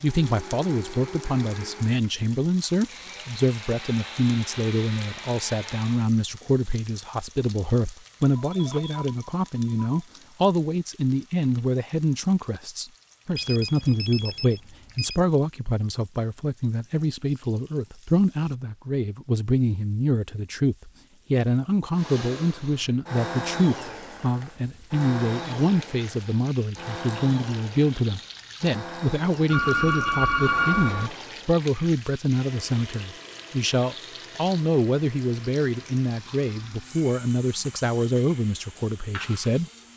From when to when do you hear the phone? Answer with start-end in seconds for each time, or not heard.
8.3-10.1, 13.3-15.2, 29.5-31.1.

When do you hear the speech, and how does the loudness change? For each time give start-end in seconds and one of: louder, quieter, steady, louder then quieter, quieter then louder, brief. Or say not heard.
0.0-39.9 steady.